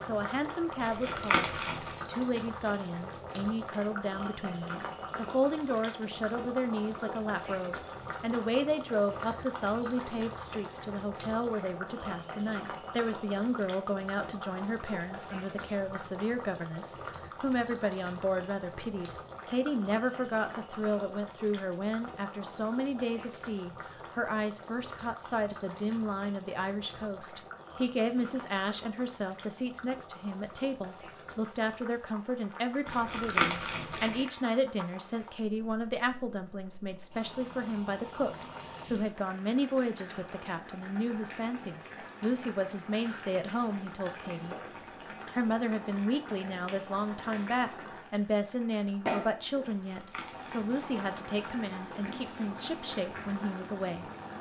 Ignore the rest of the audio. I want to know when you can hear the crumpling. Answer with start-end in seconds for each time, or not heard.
0.8-1.9, 32.9-34.2, 49.6-51.2.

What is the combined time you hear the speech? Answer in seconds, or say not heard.
53 s.